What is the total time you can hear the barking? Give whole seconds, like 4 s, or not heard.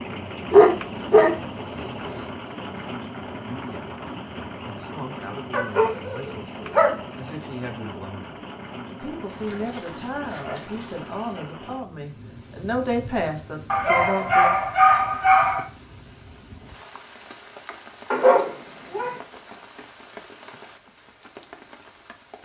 8 s.